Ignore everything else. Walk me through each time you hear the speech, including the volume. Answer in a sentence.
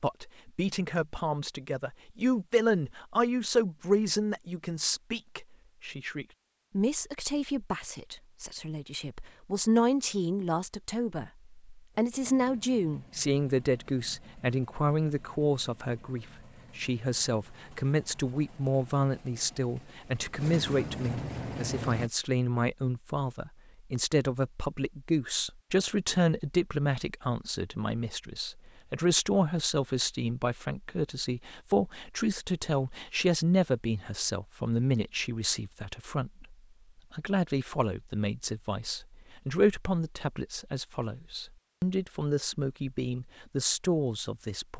The speech can be heard from 0.0 to 44.7 s, at a steady volume.